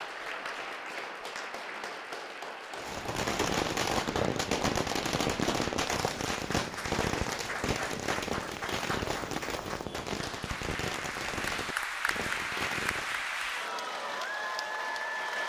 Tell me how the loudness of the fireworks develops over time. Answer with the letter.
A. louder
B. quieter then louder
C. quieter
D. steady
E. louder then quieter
C.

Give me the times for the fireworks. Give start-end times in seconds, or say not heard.
2.8-13.2.